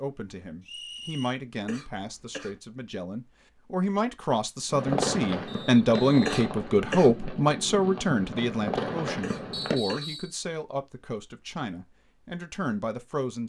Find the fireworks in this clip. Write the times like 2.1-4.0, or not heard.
4.7-9.8.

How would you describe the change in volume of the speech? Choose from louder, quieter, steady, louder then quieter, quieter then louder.
louder then quieter.